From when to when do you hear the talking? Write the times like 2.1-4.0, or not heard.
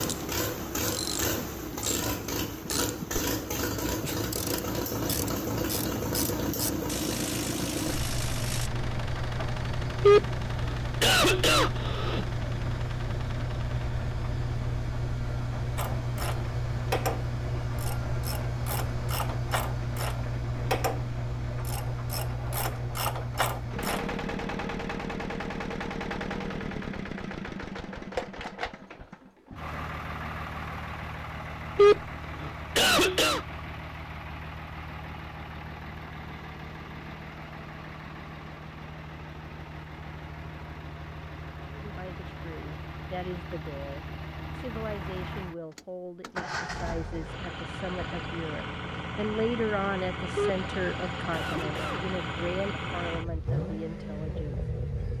41.8-54.6.